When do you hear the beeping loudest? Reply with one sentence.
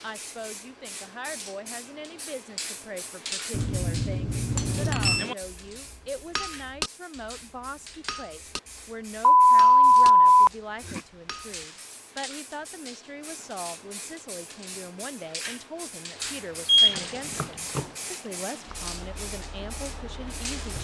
The volume of the beeping peaks at 10 seconds.